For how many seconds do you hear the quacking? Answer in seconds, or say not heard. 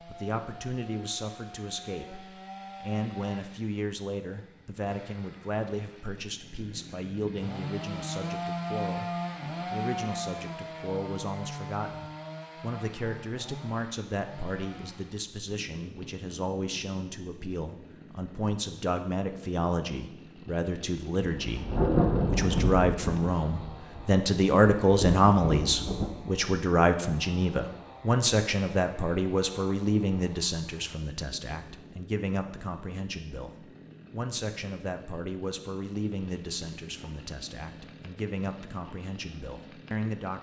not heard.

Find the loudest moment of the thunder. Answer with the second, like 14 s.
22 s.